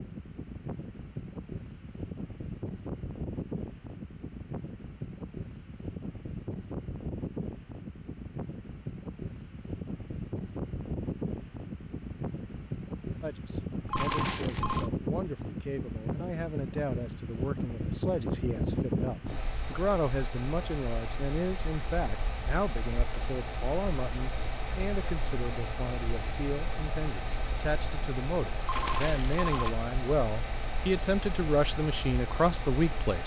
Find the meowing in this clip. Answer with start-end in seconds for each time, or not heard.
not heard.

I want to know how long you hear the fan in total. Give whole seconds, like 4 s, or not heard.
33 s.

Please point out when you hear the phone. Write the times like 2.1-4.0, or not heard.
13.8-14.9, 28.6-29.8.